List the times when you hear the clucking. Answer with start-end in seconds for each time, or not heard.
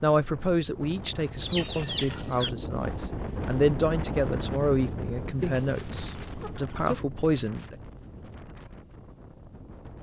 1.4-2.5, 5.4-7.0.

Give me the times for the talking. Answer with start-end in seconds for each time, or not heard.
0.0-7.8.